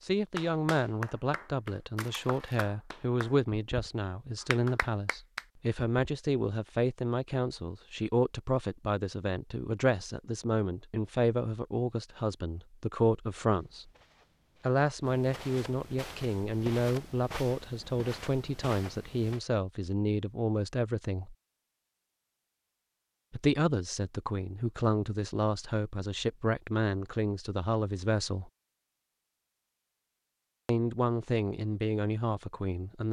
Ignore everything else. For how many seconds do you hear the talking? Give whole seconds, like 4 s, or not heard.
28 s.